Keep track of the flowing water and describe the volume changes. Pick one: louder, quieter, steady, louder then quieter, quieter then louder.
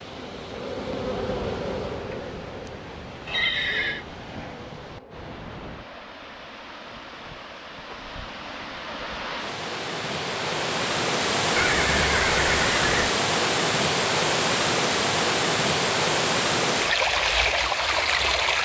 louder.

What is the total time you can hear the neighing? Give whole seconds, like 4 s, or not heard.
2 s.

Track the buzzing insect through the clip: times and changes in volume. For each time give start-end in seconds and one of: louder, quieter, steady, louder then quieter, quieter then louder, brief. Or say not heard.
0.0-5.4 quieter.